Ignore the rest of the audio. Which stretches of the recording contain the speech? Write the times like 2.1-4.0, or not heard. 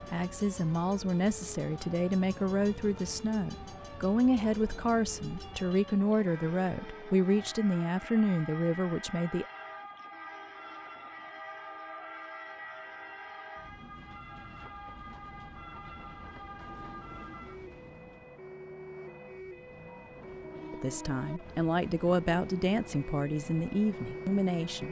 0.1-9.4, 20.7-24.8.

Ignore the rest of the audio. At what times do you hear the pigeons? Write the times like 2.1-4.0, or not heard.
not heard.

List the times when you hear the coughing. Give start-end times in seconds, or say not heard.
not heard.